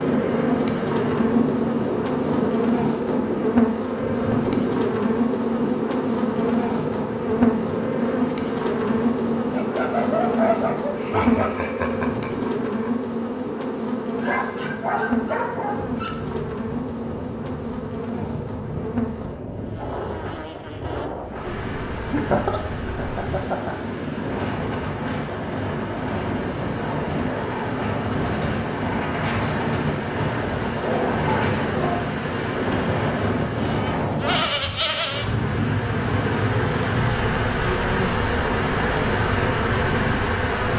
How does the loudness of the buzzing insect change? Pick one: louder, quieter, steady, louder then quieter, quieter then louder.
quieter then louder.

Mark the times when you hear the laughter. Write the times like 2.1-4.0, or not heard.
10.9-12.9, 22.1-23.8.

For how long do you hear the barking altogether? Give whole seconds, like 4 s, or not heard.
5 s.